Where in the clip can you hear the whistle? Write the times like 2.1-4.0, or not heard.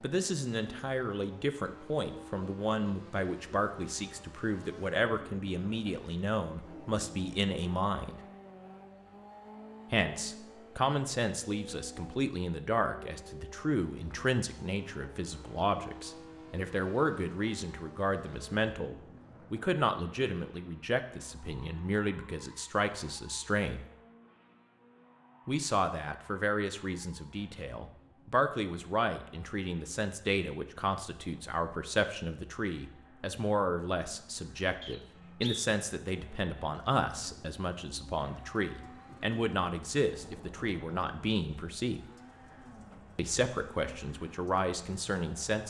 34.8-35.7.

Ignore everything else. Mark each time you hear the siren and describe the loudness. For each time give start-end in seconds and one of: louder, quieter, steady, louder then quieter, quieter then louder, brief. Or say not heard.
not heard.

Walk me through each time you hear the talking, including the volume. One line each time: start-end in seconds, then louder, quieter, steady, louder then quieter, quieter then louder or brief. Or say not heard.
0.0-8.2 steady
9.9-23.9 steady
25.4-42.0 steady
43.1-45.6 brief.